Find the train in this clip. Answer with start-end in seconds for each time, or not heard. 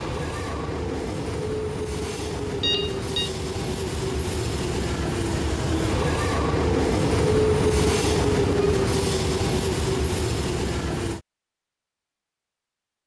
0.0-11.2.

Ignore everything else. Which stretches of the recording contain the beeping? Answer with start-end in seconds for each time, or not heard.
2.6-3.3.